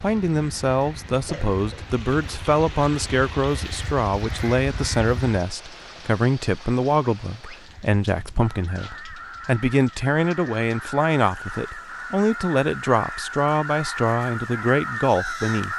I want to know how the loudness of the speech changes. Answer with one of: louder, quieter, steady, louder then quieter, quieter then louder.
steady.